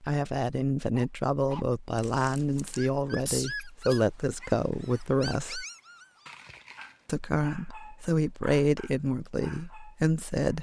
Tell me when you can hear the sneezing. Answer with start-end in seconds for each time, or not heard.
3.1-4.0.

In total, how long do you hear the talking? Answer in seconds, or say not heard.
9 s.